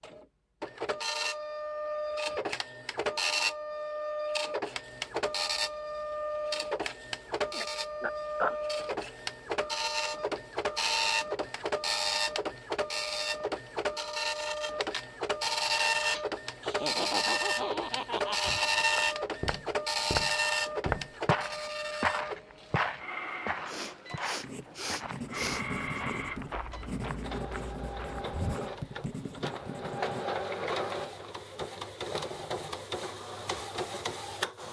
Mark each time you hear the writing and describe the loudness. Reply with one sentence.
The writing can be heard from 24.4 to 30.2 s, at a steady volume.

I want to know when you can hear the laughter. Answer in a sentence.
You can hear the laughter from 16.6 to 19.1 s.